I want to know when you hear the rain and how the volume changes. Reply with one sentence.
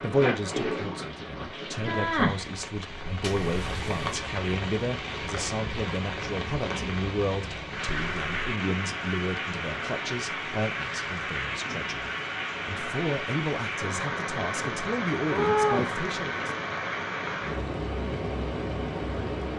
The rain can be heard from 0.0 to 19.5 s, at a steady volume.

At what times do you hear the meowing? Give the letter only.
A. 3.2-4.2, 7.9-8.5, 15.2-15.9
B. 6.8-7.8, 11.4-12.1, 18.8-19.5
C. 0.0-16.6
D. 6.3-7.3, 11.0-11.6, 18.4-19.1
A.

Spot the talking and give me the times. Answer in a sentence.
The talking can be heard from 0.0 to 16.6 s.